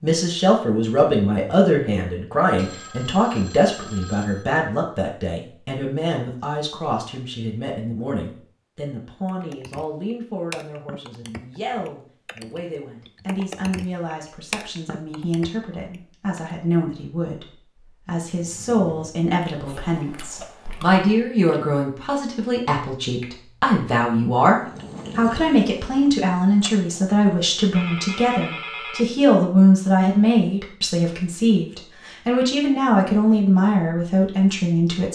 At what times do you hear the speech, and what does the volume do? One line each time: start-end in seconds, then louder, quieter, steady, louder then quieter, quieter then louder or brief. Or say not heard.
0.0-35.1 quieter then louder.